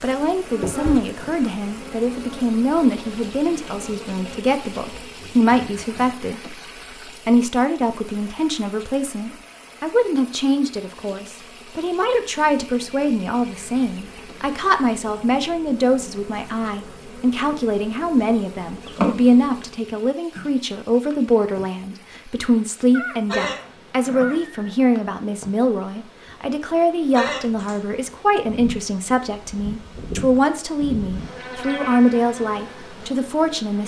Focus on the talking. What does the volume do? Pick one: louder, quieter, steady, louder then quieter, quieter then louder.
steady.